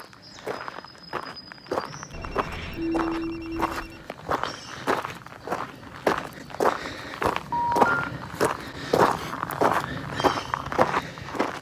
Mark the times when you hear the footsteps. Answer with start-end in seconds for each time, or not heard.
0.0-11.5.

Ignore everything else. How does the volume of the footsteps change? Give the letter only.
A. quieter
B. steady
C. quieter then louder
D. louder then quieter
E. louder
E.